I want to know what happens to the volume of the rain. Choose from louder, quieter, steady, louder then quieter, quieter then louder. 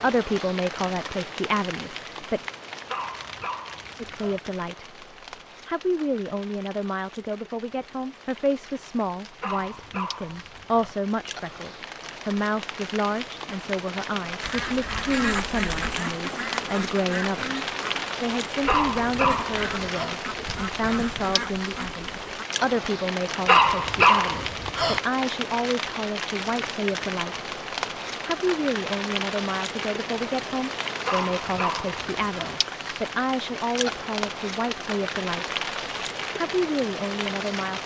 louder.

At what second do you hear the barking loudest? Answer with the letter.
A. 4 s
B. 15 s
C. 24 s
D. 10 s
C.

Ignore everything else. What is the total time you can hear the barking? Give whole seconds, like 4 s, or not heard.
8 s.